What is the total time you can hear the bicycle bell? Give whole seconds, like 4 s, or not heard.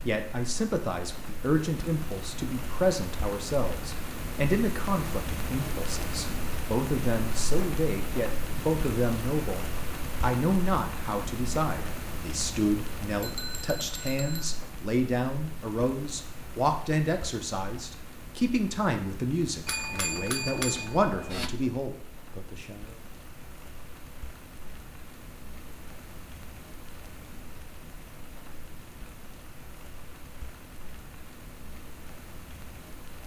3 s.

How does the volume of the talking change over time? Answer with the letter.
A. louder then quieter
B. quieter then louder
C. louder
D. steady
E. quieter
D.